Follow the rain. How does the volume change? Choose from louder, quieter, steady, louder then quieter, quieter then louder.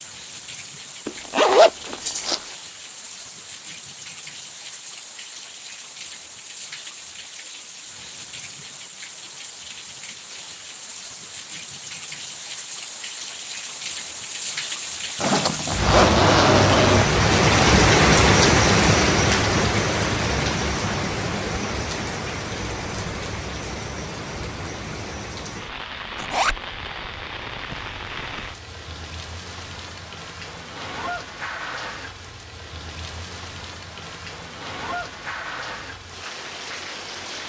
louder then quieter.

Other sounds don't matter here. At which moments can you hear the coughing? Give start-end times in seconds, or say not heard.
not heard.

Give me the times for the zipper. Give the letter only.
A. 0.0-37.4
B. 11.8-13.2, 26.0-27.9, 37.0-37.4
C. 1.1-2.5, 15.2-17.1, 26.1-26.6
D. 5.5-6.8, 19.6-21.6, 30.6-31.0
C.